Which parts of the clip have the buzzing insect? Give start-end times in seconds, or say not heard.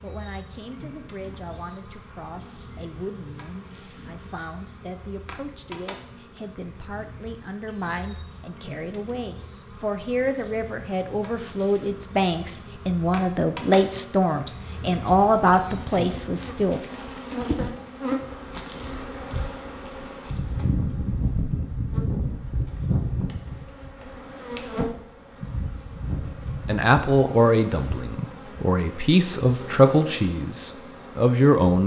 0.0-31.8.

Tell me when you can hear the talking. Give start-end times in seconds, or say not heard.
0.0-16.8, 26.4-31.8.